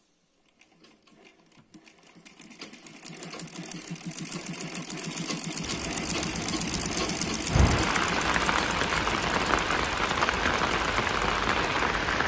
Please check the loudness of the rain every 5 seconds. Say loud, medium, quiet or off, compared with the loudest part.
off, loud, loud.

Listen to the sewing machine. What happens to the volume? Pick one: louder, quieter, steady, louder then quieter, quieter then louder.
louder then quieter.